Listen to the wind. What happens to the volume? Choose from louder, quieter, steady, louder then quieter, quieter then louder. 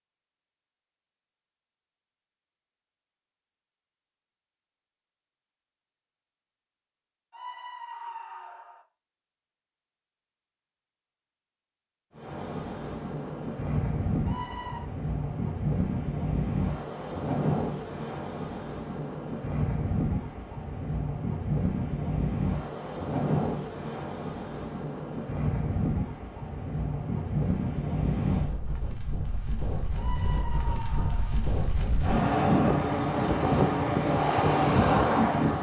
louder.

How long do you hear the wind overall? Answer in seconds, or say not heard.
23 s.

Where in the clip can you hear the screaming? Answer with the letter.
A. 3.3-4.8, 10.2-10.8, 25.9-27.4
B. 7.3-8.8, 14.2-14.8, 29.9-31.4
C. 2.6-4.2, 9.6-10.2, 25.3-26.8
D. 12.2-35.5
B.